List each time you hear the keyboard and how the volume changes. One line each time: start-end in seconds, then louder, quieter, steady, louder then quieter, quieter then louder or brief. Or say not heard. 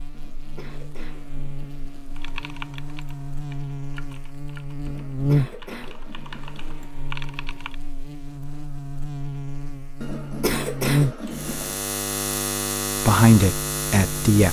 2.1-7.8 quieter then louder.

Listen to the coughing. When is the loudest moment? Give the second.
11 s.